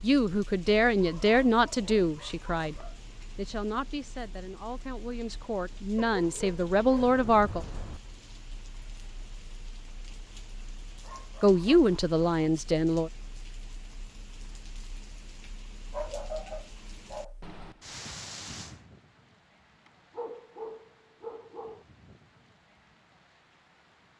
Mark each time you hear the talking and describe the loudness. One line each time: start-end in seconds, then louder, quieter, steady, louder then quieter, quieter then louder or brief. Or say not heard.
0.0-7.7 quieter then louder
11.4-13.1 brief.